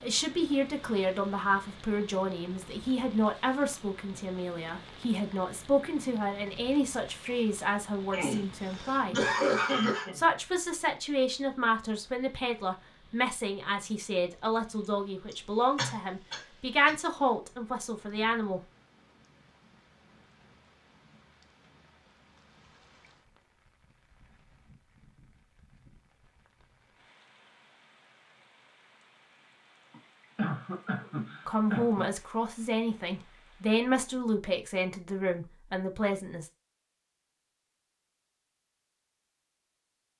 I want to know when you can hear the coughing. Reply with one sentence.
The coughing can be heard from 8.1 to 10.2 s, from 15.3 to 16.9 s and from 29.9 to 32.1 s.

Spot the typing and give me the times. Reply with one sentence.
You can't hear the typing here.